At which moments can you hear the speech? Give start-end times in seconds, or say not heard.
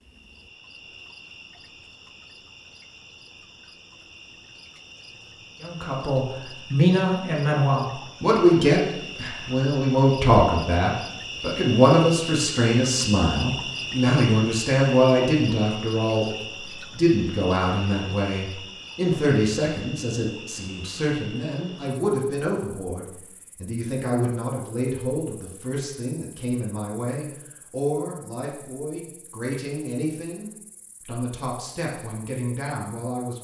5.6-33.3.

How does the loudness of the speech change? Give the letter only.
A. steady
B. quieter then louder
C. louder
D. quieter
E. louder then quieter
D.